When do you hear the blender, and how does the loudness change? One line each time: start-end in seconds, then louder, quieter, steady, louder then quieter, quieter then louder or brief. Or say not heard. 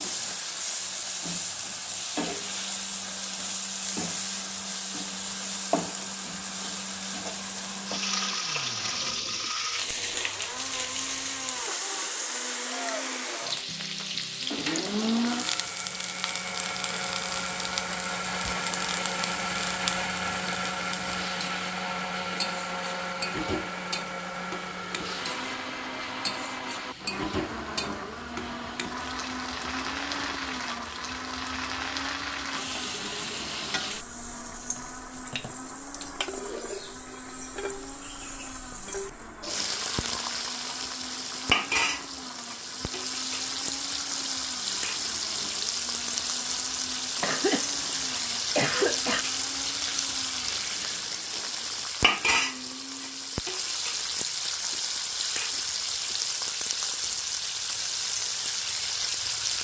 0.0-53.5 louder then quieter.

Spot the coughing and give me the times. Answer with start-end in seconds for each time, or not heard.
47.2-49.2.